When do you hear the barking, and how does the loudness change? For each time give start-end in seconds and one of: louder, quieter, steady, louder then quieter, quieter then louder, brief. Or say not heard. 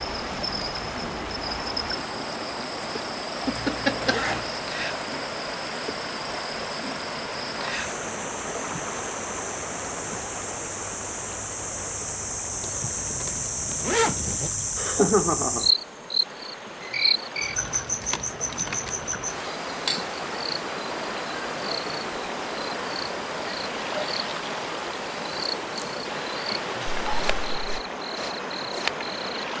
not heard.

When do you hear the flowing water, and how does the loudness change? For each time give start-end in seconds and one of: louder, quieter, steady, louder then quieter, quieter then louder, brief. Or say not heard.
0.0-29.5 quieter then louder.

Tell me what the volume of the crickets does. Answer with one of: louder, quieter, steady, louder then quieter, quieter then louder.
louder then quieter.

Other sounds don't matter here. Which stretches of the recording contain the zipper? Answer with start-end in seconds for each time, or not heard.
3.5-4.6, 12.6-14.5, 27.1-27.6.